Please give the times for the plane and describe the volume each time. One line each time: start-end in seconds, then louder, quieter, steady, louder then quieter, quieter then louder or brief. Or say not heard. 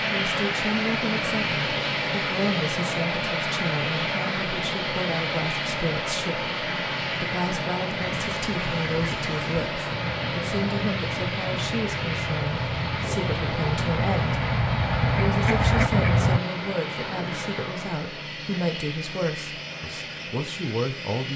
0.0-21.3 quieter.